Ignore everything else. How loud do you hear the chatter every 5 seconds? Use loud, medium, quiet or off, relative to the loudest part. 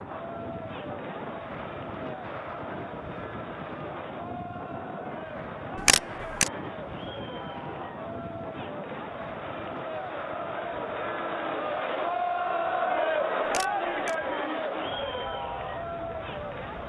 medium, medium, loud, medium.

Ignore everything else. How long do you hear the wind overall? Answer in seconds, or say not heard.
17 s.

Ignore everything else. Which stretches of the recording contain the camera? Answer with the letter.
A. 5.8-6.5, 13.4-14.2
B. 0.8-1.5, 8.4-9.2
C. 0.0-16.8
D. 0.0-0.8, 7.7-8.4
A.